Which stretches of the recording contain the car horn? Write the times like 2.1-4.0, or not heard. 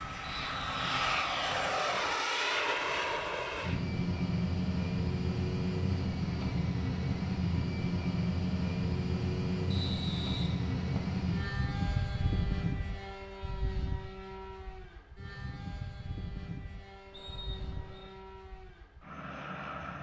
not heard.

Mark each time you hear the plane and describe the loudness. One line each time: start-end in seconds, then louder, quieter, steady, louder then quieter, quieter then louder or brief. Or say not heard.
0.0-19.9 quieter.